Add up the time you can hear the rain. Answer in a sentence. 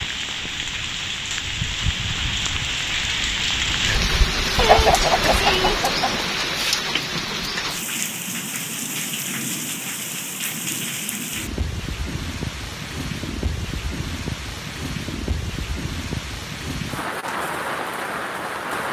You can hear the rain for 19 seconds altogether.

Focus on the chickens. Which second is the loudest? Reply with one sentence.
The volume of the chickens peaks at 5 seconds.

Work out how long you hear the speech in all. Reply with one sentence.
You can't hear the speech here.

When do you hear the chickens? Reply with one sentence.
The chickens can be heard from 4.5 to 6.3 s.